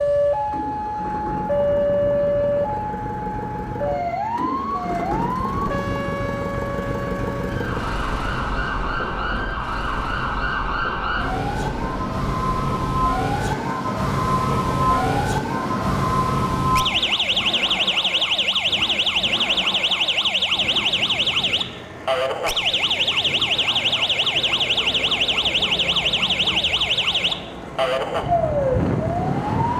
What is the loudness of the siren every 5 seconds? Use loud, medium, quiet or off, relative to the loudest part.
loud, medium, loud, loud, loud, loud.